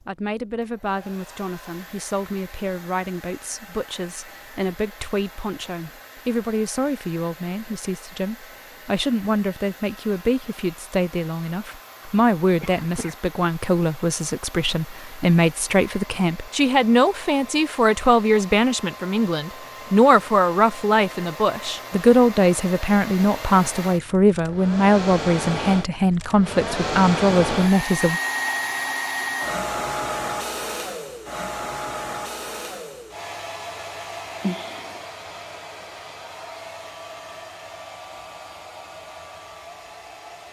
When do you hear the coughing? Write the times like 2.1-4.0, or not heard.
12.0-13.2, 34.4-35.0.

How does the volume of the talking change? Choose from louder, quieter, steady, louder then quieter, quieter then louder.
louder.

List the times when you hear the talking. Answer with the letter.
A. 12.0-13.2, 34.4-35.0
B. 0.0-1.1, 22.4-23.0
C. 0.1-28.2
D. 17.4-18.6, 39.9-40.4
C.